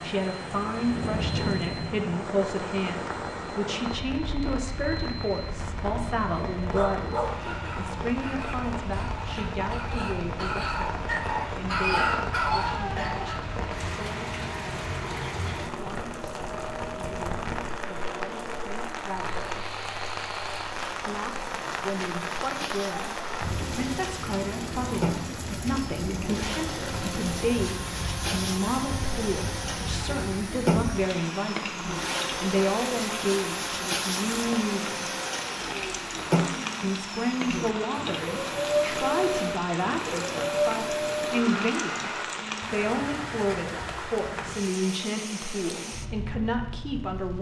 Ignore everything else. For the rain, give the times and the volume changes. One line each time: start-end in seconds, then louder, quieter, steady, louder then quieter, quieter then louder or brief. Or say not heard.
0.0-47.3 steady.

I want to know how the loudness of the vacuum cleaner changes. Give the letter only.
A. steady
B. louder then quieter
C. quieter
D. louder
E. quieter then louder
D.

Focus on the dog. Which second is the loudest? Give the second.
12 s.